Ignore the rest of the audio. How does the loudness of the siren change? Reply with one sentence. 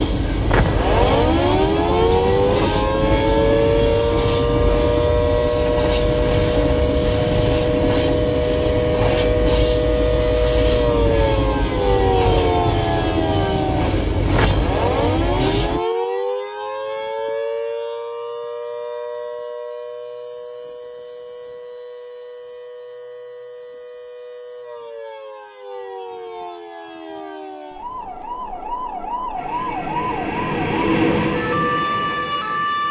The loudness of the siren goes down, then up.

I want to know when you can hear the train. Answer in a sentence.
The train can be heard from 0.0 to 15.8 s and from 29.4 to 32.8 s.